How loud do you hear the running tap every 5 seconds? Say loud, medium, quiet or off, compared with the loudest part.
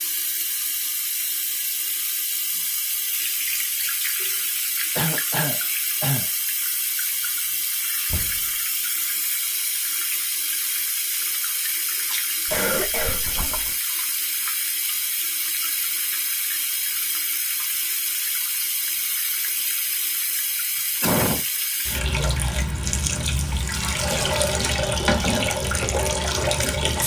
medium, medium, medium, medium, loud, loud.